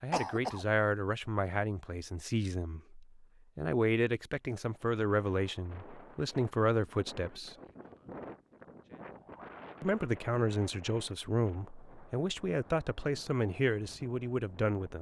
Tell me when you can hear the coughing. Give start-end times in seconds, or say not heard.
0.1-0.7.